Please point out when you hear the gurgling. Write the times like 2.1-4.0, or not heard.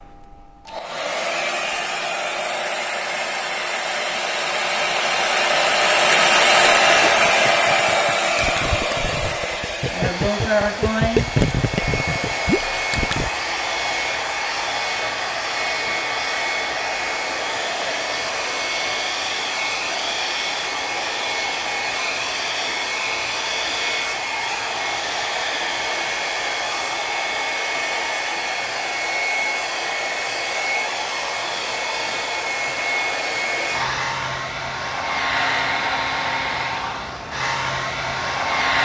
6.8-13.3.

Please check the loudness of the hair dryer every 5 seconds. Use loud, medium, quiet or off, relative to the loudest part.
medium, loud, medium, medium, medium, medium, medium, medium.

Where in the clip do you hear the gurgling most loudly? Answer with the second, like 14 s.
11 s.